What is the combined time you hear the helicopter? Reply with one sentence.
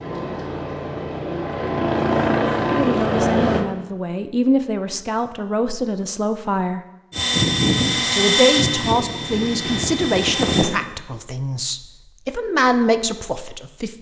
The helicopter can be heard for 7 seconds in total.